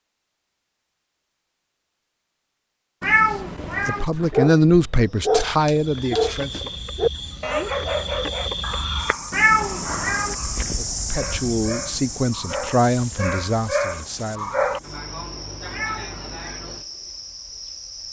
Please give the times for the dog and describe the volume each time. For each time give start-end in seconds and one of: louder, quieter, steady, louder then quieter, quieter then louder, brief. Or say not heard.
3.9-14.8 quieter then louder.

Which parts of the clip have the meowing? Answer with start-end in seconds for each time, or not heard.
3.0-4.0, 9.3-10.3, 15.7-16.6.